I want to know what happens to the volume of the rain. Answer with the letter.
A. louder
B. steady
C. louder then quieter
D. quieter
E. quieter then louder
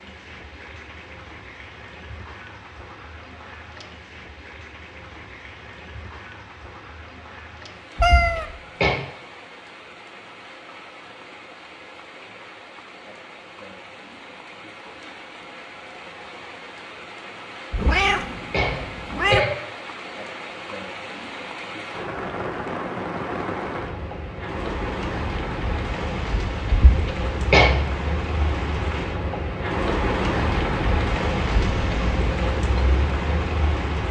A.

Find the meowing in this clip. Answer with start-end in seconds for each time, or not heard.
8.0-8.4, 17.8-19.4, 31.6-32.2.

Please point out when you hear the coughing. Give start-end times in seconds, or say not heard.
8.0-9.0, 17.7-19.5, 26.7-27.8.